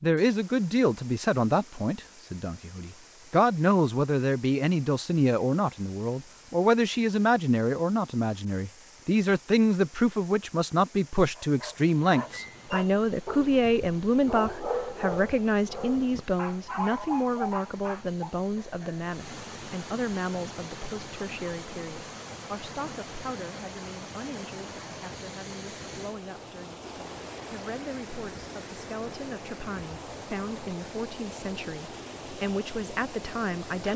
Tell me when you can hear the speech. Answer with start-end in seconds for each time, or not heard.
0.0-33.9.